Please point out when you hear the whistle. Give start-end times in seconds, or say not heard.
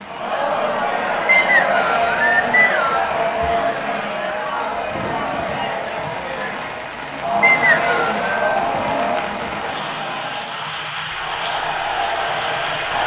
1.2-3.0, 7.4-8.2.